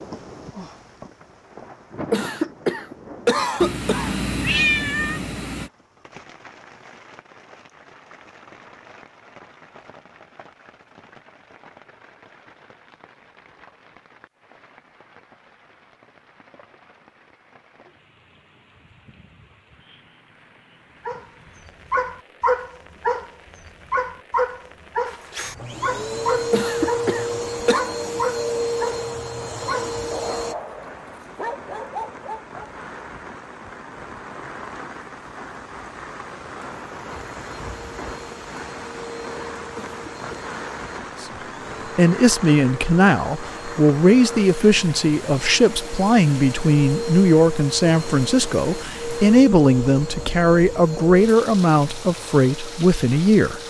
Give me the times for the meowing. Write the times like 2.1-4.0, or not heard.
3.6-5.7.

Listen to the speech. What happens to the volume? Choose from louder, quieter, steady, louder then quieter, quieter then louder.
steady.